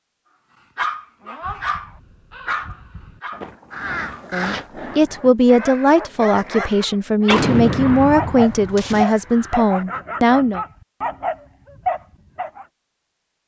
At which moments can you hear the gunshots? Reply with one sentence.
The gunshots can be heard from 7.2 to 9.1 s.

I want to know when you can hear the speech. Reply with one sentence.
You can hear the speech from 4.3 to 10.6 s.